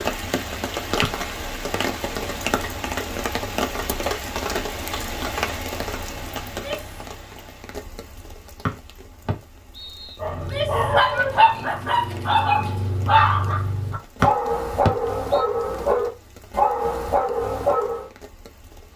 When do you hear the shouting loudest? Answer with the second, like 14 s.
11 s.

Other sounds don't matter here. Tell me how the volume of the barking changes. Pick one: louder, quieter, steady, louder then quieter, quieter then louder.
steady.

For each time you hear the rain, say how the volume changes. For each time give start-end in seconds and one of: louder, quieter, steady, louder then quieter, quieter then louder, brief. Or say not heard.
0.0-18.9 quieter.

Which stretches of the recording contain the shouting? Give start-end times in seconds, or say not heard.
6.5-6.9, 10.3-11.8.